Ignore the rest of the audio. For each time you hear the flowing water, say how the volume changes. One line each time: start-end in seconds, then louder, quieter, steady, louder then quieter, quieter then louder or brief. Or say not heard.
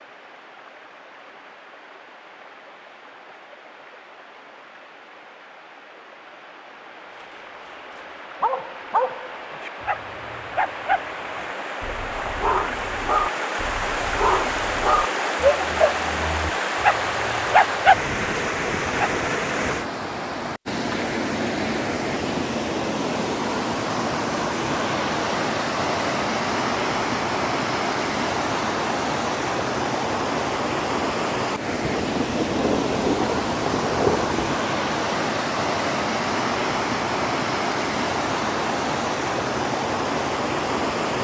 0.0-41.1 louder.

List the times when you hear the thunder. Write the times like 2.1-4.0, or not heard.
31.8-34.5.